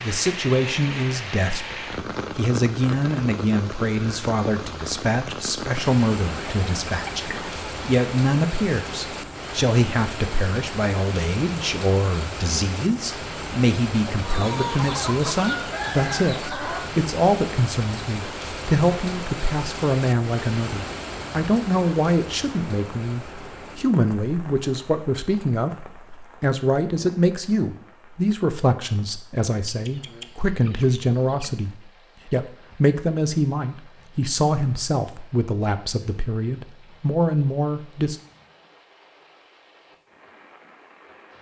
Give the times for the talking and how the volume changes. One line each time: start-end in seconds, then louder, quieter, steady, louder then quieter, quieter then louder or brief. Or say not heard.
0.0-38.1 steady.